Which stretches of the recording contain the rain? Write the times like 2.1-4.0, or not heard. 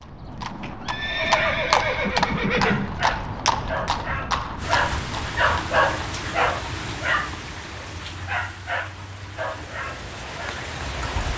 4.5-11.3.